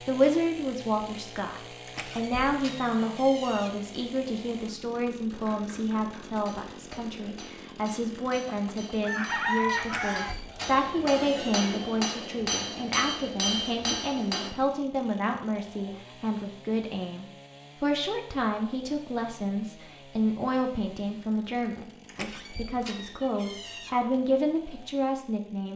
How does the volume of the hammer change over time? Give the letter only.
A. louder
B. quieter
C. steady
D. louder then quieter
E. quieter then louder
A.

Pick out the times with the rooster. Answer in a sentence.
You can hear the rooster from 8.4 to 10.3 s.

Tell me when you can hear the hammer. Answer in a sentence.
The hammer can be heard from 5.3 to 14.5 s.